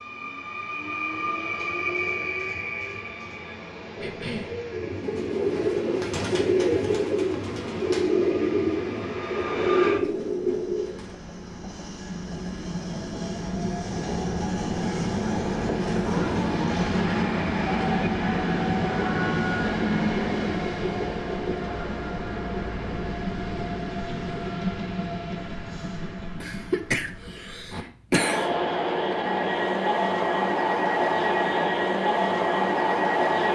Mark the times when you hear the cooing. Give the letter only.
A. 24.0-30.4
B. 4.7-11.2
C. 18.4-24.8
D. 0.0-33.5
B.